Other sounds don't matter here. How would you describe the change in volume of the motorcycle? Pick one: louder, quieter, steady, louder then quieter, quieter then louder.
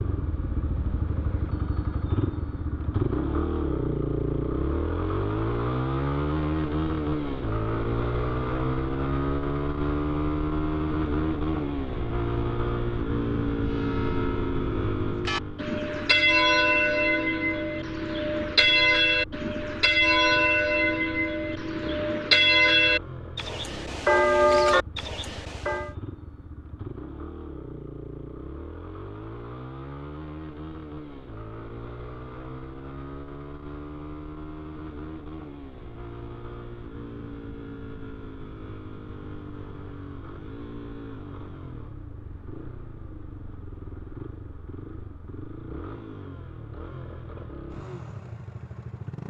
quieter.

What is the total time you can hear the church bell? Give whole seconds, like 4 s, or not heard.
12 s.